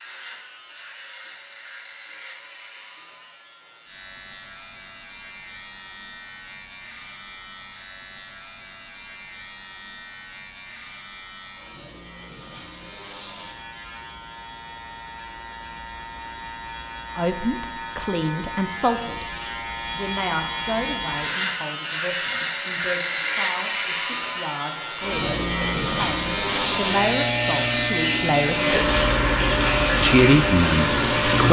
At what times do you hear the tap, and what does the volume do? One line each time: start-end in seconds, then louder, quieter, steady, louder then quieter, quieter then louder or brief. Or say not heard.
26.4-31.4 louder.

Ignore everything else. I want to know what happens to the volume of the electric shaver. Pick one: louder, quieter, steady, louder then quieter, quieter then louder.
louder.